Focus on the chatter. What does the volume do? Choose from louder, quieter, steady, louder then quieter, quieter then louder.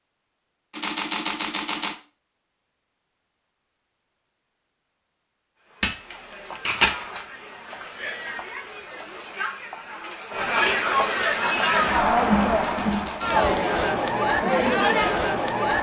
louder.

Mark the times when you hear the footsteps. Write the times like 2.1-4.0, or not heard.
not heard.